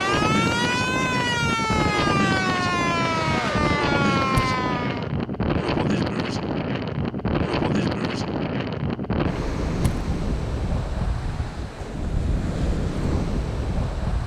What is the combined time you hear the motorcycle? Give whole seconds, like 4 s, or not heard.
not heard.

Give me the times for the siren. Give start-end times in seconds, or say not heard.
0.0-5.1.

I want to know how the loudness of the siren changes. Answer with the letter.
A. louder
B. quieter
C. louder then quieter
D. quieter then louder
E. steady
E.